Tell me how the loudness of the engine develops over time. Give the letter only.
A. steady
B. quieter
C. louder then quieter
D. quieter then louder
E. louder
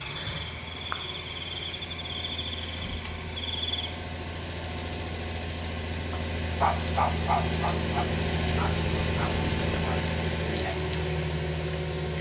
E.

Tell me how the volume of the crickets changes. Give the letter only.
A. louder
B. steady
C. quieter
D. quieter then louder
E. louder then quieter
E.